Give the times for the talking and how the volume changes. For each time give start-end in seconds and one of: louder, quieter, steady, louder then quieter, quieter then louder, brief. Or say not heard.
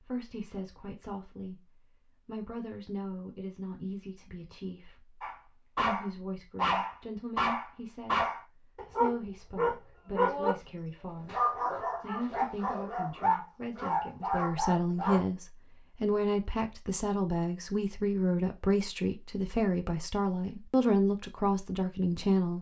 0.0-22.5 louder.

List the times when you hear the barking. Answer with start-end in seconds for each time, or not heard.
5.2-15.2.